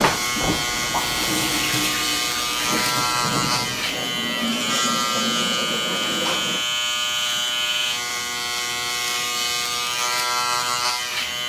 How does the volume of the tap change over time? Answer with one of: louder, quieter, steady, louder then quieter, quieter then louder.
steady.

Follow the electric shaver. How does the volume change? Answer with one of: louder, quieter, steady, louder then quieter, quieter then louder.
steady.